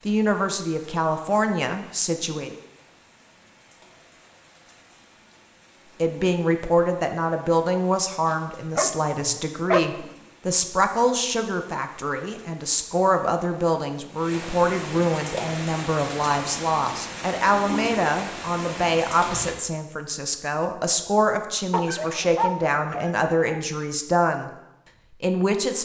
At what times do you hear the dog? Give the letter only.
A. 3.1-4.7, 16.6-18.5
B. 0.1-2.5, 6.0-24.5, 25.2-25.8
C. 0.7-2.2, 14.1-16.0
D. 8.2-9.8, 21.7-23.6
D.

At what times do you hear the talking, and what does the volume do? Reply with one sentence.
The talking can be heard briefly from 0.1 to 2.5 s; from 6.0 to 24.5 s, at a steady volume; and briefly from 25.2 to 25.8 s.